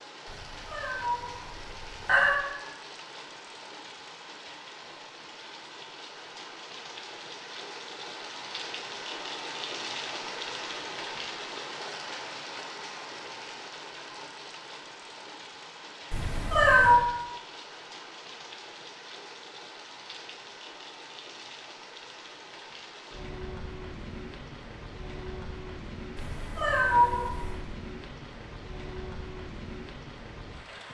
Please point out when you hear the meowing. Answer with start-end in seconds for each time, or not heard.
0.2-2.5, 16.1-17.0, 26.1-27.6.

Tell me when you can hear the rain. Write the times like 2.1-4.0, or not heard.
0.0-30.8.